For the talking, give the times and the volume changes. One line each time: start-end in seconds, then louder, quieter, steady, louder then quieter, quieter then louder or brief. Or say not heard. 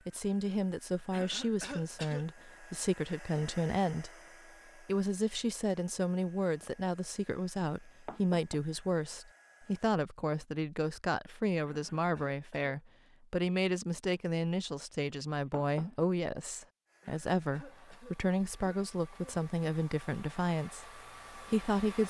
0.1-4.1 steady
4.8-22.0 steady.